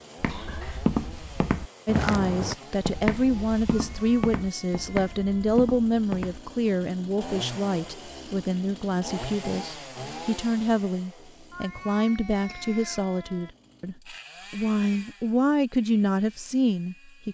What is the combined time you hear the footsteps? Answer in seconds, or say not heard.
6 s.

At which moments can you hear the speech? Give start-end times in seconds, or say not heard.
1.9-17.2.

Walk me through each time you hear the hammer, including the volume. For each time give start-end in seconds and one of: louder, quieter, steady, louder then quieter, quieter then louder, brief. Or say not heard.
not heard.